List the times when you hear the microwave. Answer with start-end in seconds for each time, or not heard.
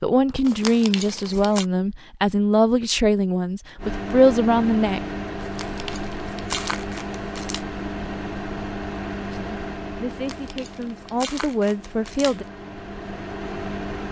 3.8-14.0.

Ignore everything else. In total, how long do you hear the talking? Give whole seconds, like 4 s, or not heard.
8 s.